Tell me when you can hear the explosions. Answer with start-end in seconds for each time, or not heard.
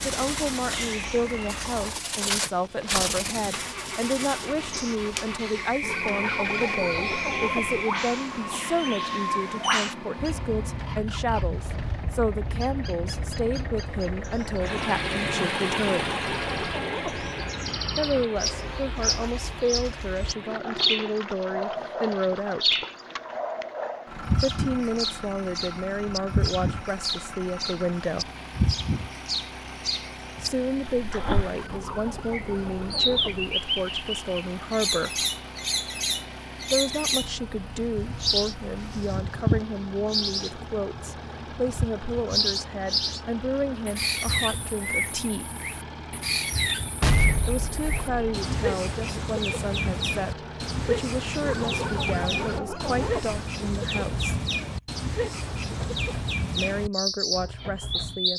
47.0-48.4.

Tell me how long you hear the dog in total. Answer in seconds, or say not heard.
8 s.